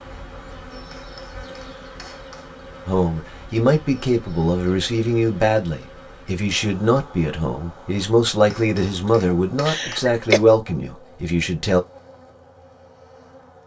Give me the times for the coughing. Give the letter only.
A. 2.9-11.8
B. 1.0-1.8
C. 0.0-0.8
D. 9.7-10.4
D.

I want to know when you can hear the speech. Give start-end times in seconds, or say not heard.
2.9-11.8.